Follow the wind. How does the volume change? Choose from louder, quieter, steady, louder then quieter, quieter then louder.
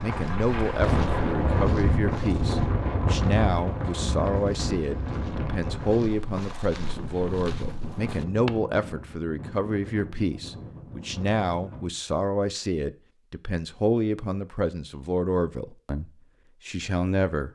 quieter.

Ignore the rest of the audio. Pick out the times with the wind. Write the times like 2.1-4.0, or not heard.
0.0-12.0.